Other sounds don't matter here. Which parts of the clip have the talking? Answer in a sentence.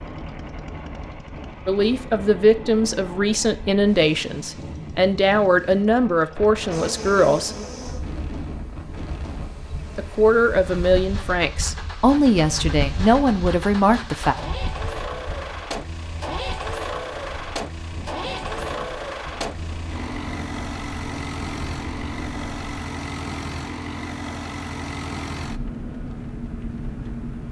You can hear the talking from 1.6 to 7.5 s and from 9.9 to 14.3 s.